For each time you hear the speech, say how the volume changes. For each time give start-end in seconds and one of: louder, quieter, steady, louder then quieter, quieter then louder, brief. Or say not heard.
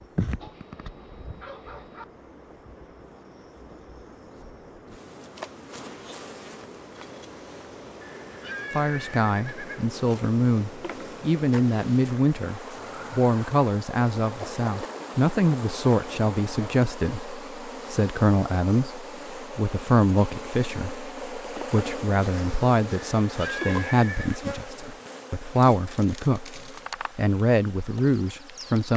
8.7-28.9 steady.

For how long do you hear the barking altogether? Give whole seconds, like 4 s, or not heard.
2 s.